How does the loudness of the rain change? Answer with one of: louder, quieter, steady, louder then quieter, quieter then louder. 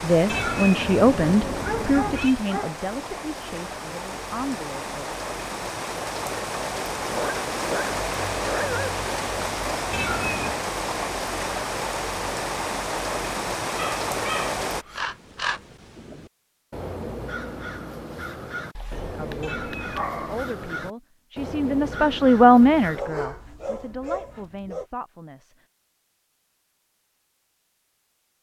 louder.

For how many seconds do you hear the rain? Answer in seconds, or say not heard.
15 s.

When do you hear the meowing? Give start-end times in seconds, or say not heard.
0.2-2.4, 9.9-10.6, 19.4-20.1.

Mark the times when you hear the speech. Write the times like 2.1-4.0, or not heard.
0.0-5.2, 19.1-25.6.